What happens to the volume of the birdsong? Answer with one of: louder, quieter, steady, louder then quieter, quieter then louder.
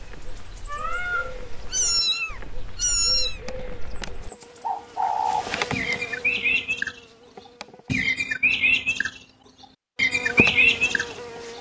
louder.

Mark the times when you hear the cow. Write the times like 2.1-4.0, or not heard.
not heard.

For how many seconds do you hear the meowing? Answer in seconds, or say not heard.
3 s.